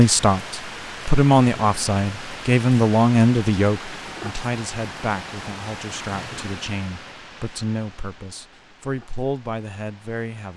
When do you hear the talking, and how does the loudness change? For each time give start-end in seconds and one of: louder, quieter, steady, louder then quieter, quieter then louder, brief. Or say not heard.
0.0-10.5 quieter.